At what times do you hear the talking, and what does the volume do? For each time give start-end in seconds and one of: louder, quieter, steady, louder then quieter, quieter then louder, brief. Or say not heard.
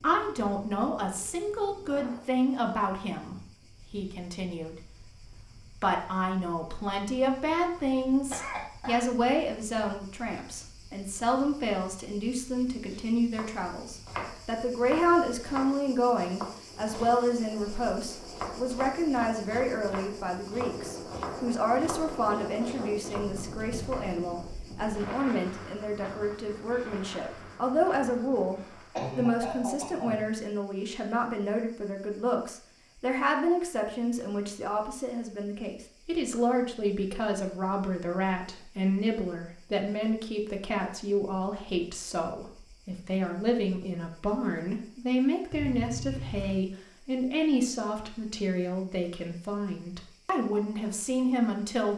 0.0-51.9 steady.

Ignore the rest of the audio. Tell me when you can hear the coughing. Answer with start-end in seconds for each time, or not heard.
8.1-9.1, 28.9-30.2, 45.5-46.5.